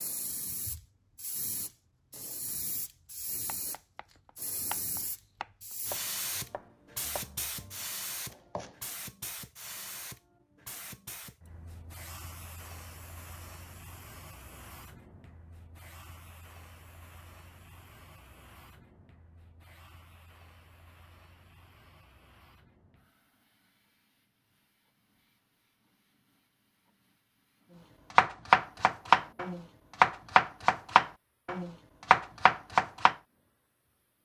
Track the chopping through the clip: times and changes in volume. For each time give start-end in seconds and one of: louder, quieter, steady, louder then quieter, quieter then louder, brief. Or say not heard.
3.5-8.8 quieter
28.1-33.1 quieter then louder.